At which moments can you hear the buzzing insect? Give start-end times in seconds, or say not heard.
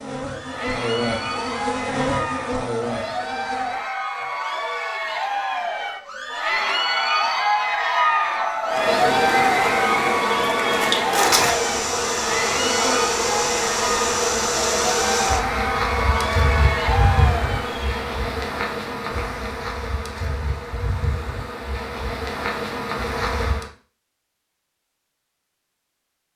0.0-3.9, 8.7-23.7.